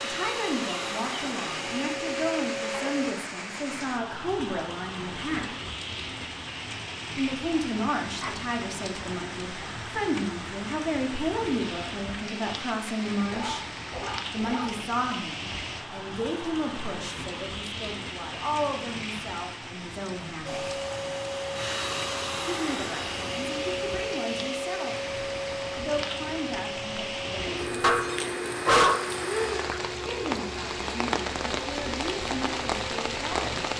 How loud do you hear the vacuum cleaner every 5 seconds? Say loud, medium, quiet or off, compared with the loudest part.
loud, off, off, off, loud, loud, medium.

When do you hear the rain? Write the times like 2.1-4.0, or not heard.
0.0-33.7.